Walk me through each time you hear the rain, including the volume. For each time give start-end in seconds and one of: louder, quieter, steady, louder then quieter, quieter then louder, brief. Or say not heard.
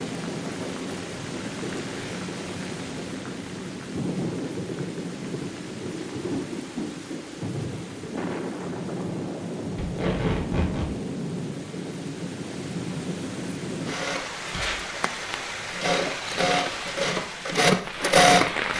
0.0-18.7 steady.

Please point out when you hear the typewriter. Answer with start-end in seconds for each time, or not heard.
not heard.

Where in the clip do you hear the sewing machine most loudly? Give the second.
18 s.